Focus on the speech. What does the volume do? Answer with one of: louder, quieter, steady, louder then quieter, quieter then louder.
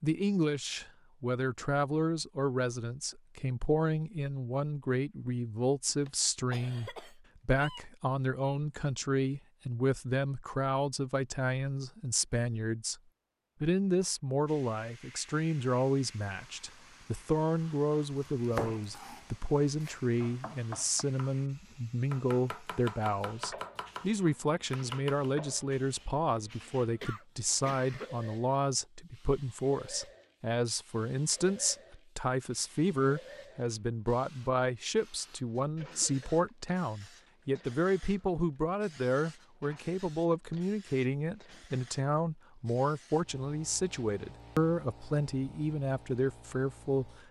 steady.